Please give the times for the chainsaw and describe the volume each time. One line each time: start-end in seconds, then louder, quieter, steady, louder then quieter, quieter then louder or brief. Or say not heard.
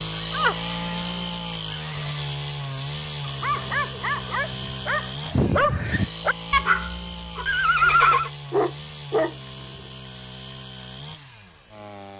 0.0-12.1 quieter.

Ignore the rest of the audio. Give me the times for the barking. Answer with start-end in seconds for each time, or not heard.
3.2-9.8.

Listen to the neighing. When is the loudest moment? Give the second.
8 s.